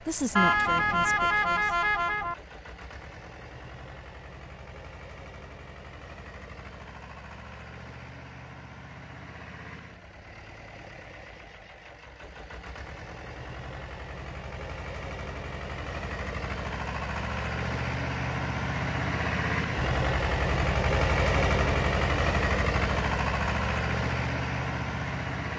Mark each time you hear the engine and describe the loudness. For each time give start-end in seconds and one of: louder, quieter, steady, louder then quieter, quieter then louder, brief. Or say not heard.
0.0-25.5 louder.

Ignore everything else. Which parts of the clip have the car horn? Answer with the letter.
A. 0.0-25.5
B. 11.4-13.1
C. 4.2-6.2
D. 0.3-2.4
D.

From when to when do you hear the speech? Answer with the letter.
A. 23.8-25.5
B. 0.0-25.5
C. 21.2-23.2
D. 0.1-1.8
D.